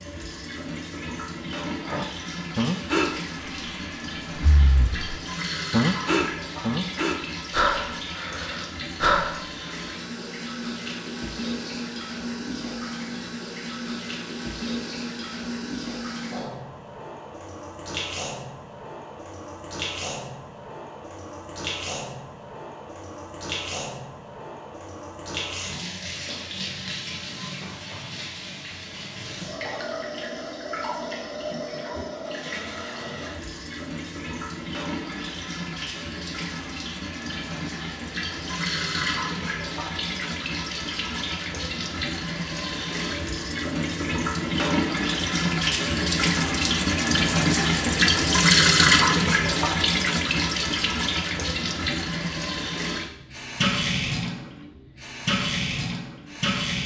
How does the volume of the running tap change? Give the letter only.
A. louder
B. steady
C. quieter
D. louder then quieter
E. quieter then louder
A.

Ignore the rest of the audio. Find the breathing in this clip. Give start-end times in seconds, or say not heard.
1.9-9.8.